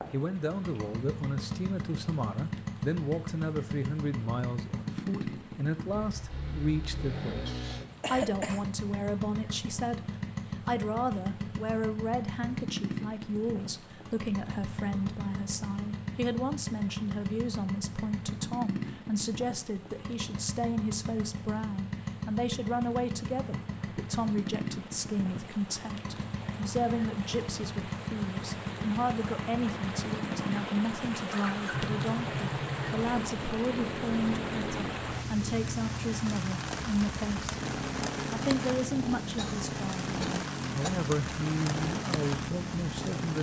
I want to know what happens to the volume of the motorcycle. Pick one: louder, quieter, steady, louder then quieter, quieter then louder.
steady.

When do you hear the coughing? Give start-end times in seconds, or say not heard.
7.5-8.7, 39.4-40.9.